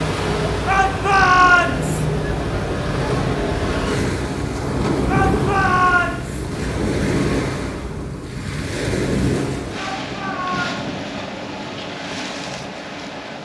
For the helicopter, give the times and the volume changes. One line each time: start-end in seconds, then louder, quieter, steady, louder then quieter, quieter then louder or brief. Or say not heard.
not heard.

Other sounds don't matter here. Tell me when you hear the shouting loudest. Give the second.
1 s.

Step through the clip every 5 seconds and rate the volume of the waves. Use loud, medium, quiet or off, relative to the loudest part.
loud, loud, medium.